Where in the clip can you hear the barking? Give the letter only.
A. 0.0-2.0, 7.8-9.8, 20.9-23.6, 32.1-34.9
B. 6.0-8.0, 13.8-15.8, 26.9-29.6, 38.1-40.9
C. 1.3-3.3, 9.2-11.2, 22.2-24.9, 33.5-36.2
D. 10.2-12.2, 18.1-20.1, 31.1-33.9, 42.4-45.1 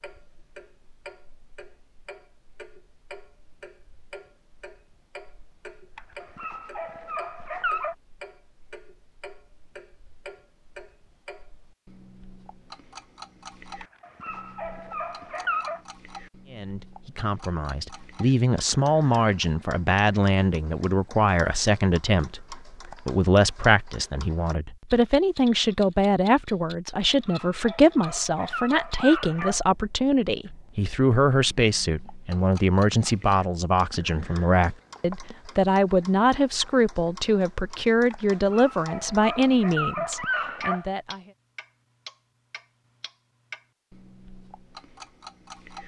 B.